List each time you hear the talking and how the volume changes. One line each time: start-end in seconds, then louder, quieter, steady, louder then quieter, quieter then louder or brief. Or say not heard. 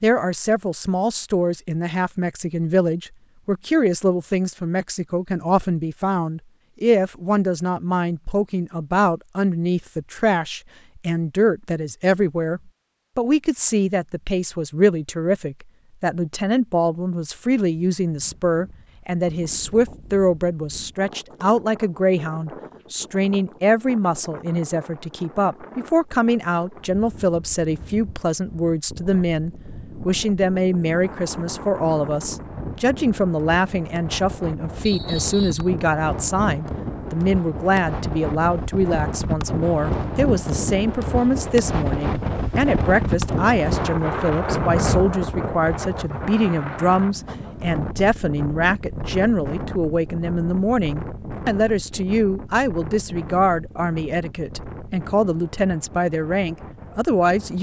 0.0-57.5 steady.